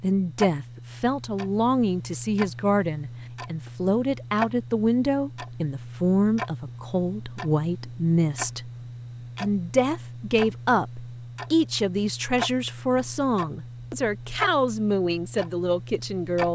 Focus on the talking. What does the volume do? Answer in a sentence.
The volume of the talking stays about the same.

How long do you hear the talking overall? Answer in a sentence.
The talking can be heard for 16 seconds in total.